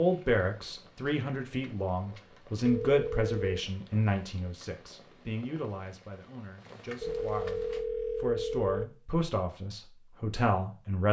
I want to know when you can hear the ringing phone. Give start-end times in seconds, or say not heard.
2.6-3.6, 7.0-8.8.